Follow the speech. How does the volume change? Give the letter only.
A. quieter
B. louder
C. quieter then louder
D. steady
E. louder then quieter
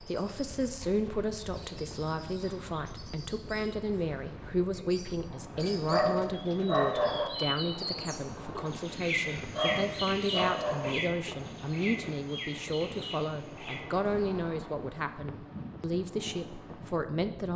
D.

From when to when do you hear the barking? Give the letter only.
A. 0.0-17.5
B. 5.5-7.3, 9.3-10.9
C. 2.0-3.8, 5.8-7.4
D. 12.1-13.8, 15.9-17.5
B.